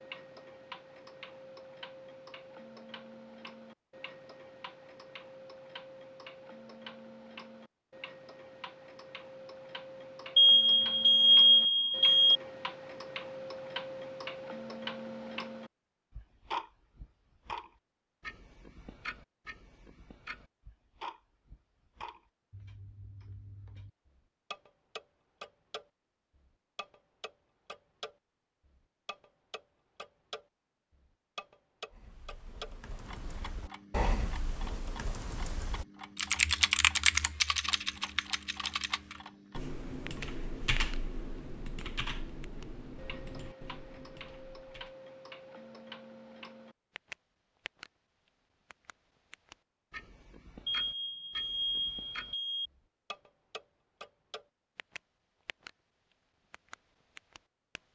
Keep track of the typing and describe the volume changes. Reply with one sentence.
The loudness of the typing goes up, then down.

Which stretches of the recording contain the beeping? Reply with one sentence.
The beeping can be heard from 10.3 to 12.4 s and from 50.6 to 52.7 s.